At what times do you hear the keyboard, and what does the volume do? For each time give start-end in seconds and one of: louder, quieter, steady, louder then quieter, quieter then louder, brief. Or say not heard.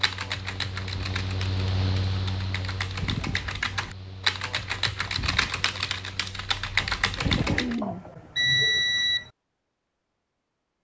0.0-7.8 louder.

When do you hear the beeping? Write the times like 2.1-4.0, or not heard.
7.8-9.3.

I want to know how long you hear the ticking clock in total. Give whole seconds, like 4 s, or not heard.
not heard.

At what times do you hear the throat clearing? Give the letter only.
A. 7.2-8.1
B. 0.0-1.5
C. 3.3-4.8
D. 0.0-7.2
A.